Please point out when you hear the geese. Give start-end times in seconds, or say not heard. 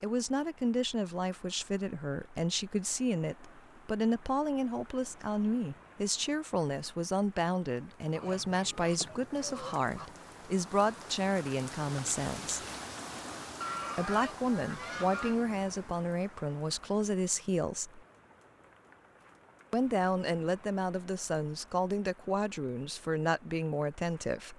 8.1-10.1, 13.6-15.4.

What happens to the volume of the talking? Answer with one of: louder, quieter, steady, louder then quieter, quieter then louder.
steady.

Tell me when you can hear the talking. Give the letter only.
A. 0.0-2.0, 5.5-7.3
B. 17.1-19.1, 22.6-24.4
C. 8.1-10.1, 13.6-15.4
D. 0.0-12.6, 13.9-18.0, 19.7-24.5
D.